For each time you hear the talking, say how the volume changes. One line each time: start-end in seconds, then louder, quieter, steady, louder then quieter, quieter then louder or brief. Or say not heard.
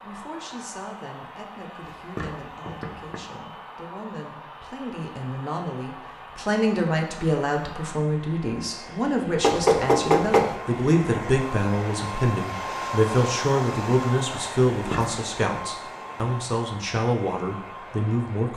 0.0-18.5 louder.